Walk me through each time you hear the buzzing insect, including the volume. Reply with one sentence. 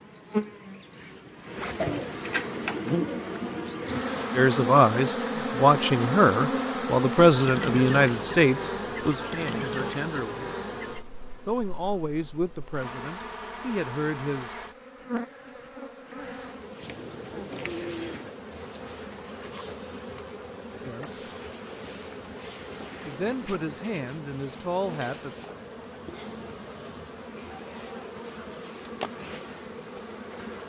The buzzing insect can be heard from 0.0 to 30.6 s, getting quieter.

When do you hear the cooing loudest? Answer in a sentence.
The volume of the cooing peaks at 2 seconds.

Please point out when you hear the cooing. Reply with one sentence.
The cooing can be heard from 1.8 to 4.3 s and from 16.8 to 18.4 s.